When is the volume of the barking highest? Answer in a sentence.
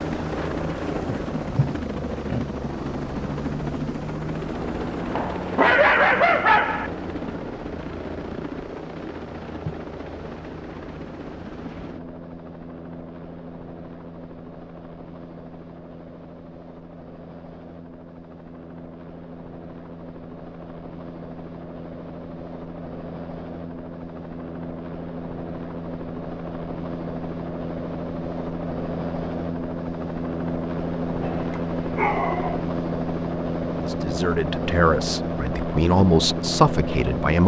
The loudest moment of the barking is at 6 seconds.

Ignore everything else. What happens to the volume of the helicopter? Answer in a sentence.
The volume of the helicopter goes down, then up.